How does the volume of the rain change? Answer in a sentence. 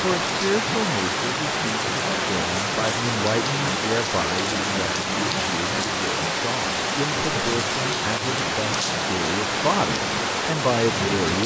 The loudness of the rain stays about the same.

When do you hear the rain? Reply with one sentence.
You can hear the rain from 0.0 to 11.4 s.